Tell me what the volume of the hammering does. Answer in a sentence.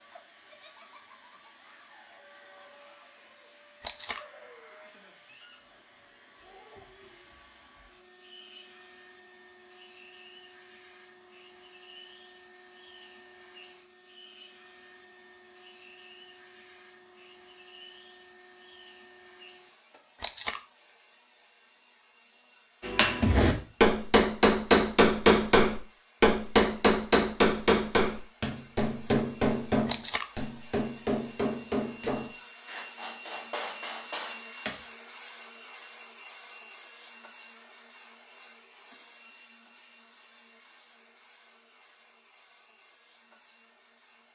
The volume of the hammering goes down.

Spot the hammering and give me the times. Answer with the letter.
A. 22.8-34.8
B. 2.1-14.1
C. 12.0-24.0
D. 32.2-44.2
A.